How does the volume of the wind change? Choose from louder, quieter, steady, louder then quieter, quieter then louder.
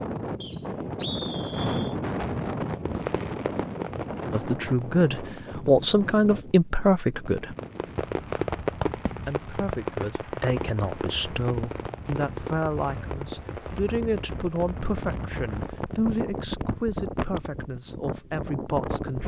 quieter then louder.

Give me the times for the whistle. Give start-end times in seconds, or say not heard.
0.4-1.9.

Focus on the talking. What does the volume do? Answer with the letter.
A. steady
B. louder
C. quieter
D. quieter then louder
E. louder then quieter
C.